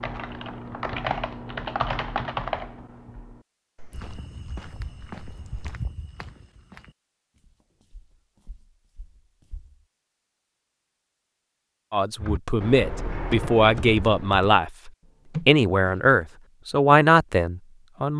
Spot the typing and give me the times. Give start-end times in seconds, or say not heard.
0.0-5.8, 12.2-16.1.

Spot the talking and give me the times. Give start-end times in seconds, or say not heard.
11.9-18.1.